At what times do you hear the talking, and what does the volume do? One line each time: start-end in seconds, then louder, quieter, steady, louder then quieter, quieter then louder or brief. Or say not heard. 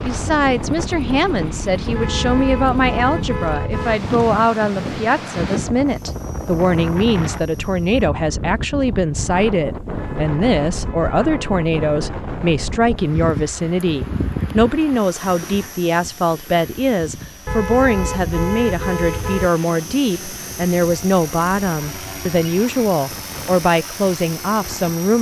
0.0-25.1 steady.